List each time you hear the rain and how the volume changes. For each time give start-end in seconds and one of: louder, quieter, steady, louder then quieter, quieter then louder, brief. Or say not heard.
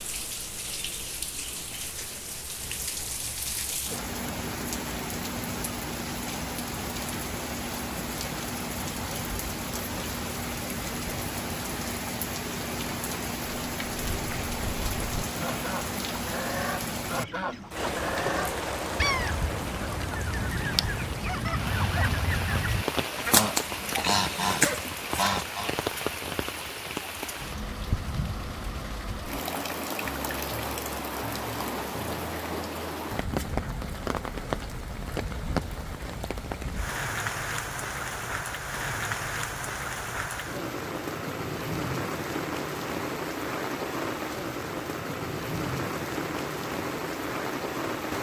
0.0-48.1 steady.